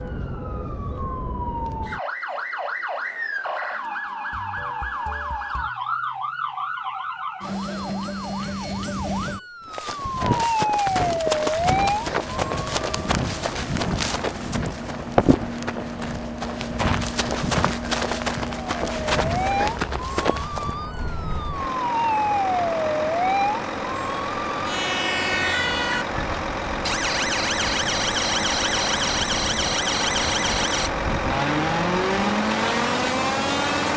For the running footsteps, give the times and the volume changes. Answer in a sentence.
You can hear the running footsteps from 9.7 to 20.8 s, at a steady volume.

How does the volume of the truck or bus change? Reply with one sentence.
The volume of the truck or bus goes up.